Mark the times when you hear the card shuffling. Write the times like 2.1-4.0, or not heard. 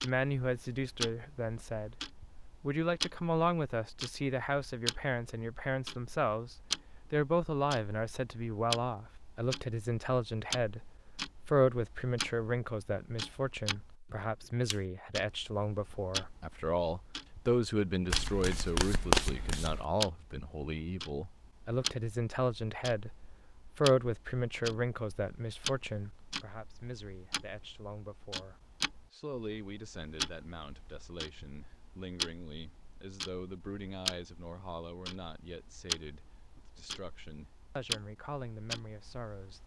18.1-19.9.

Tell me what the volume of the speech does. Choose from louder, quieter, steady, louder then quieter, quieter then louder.
quieter.